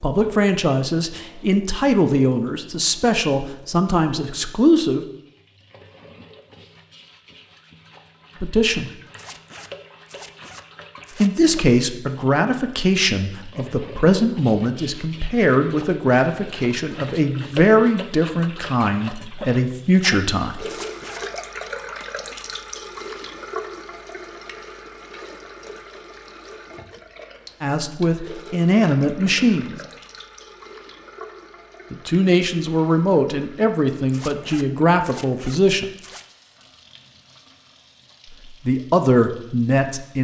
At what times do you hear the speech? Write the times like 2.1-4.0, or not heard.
0.0-5.0, 8.4-8.9, 11.2-20.6, 27.6-29.8, 31.9-35.9, 38.6-40.1.